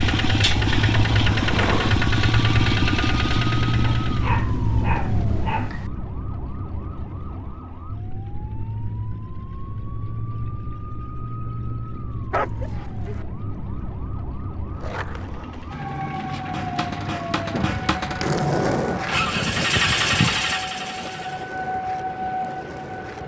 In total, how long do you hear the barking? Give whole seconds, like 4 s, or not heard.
3 s.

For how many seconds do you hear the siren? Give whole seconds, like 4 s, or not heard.
23 s.